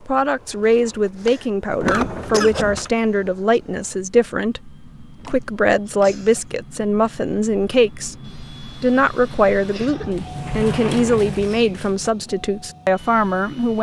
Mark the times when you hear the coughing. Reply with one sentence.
You can hear the coughing from 0.7 to 2.6 s, from 5.3 to 6.5 s and from 9.7 to 10.1 s.